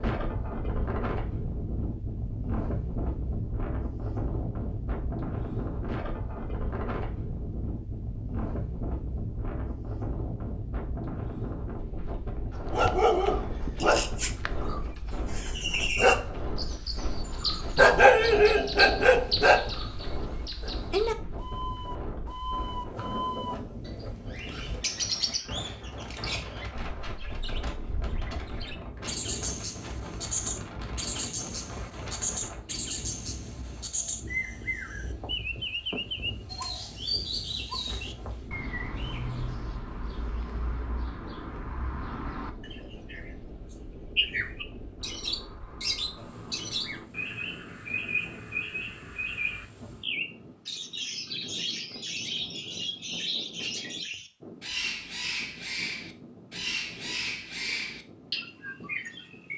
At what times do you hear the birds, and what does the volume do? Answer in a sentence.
You can hear the birds from 13.8 to 59.5 s, at a steady volume.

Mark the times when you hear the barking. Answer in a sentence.
The barking can be heard from 12.6 to 20.2 s.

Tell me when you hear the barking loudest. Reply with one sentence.
The volume of the barking peaks at 18 seconds.